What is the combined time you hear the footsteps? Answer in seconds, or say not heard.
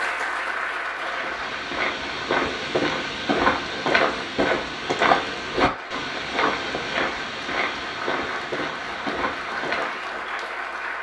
9 s.